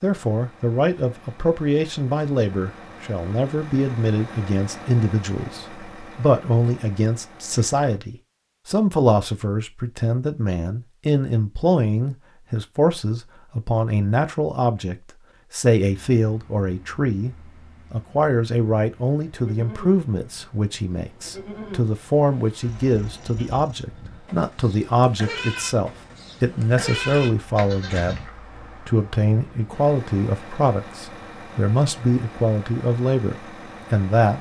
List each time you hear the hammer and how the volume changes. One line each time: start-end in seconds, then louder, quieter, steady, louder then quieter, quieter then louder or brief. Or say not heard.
not heard.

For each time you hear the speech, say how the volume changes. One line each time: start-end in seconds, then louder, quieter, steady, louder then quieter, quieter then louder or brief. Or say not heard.
0.0-34.3 steady.